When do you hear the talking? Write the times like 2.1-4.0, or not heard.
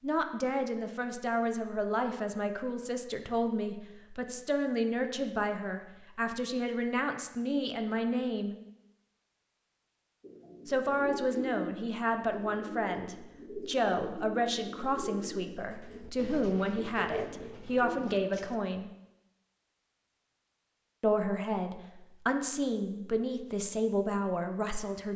0.0-8.6, 10.7-18.9, 21.0-25.1.